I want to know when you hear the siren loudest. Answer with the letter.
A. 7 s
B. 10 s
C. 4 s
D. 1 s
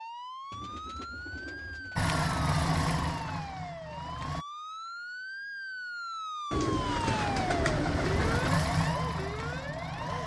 A.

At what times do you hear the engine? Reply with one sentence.
The engine can be heard from 1.9 to 4.5 s and from 7.2 to 10.2 s.